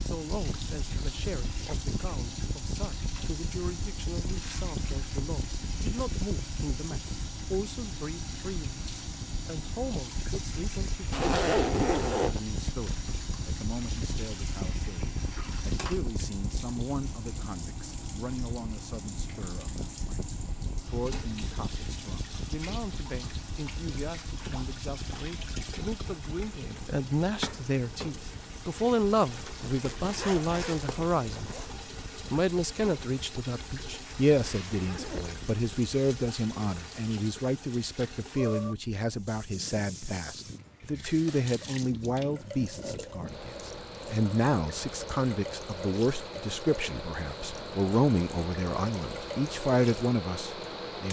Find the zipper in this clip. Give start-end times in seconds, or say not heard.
11.1-12.4, 29.3-31.7, 34.6-35.4.